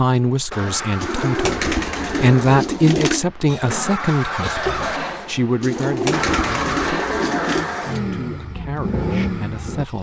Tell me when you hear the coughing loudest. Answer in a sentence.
The volume of the coughing peaks at 5 seconds.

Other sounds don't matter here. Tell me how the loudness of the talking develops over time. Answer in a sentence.
The loudness of the talking goes up, then down.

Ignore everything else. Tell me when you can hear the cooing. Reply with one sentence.
You can hear the cooing from 0.9 to 3.2 s and from 5.6 to 7.7 s.